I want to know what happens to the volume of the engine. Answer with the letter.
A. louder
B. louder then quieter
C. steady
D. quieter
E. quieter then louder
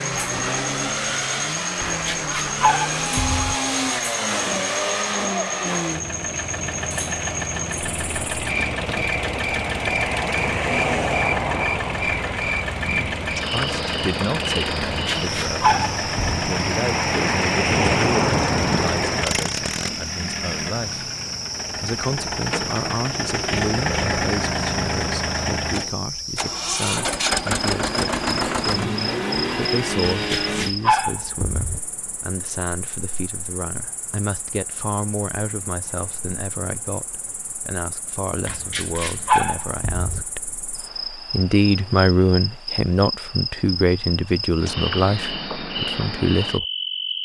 C.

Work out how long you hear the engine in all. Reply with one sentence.
You can hear the engine for 31 seconds altogether.